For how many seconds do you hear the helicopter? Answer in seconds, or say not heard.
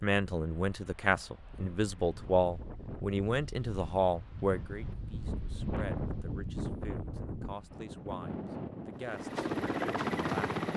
2 s.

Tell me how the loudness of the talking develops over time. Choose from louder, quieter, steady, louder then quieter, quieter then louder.
quieter.